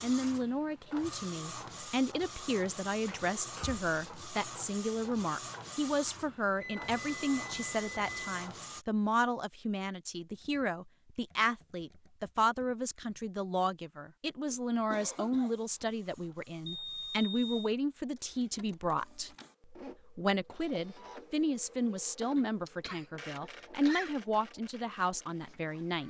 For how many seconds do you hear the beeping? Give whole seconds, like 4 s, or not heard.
3 s.